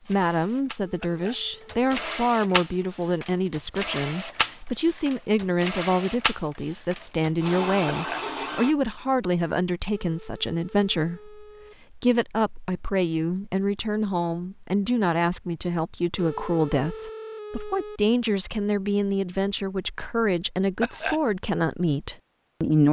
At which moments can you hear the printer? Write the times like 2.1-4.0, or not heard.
0.0-8.8.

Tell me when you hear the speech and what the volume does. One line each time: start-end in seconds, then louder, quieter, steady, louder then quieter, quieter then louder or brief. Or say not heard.
0.1-22.8 steady.